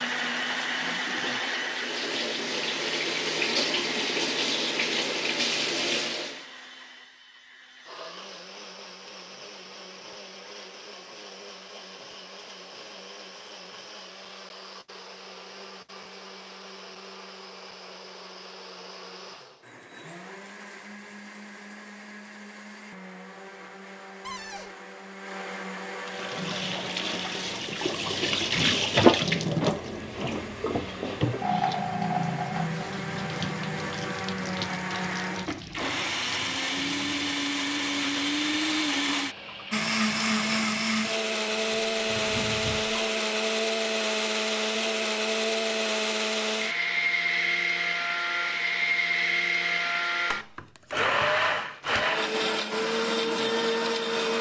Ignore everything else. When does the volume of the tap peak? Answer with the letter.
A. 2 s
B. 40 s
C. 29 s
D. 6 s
C.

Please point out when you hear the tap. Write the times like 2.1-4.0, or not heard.
0.0-6.5, 26.0-43.7.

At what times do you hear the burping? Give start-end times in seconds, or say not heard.
not heard.